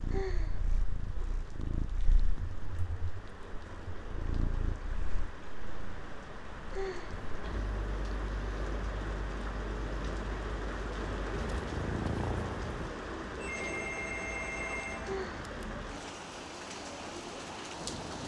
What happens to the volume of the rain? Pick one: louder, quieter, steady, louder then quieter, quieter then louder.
louder.